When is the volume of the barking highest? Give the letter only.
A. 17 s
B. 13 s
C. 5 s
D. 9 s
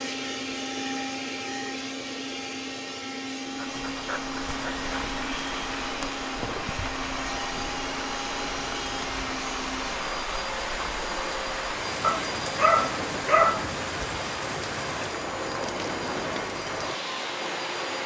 B.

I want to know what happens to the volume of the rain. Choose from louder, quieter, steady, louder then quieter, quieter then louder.
steady.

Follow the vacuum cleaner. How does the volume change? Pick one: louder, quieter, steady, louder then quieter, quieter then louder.
steady.